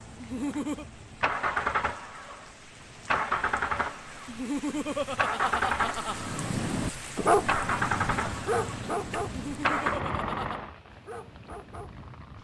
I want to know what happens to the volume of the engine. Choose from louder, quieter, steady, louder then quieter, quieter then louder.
steady.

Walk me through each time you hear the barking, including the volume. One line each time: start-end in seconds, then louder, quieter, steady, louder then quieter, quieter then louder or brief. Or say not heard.
6.0-12.3 quieter.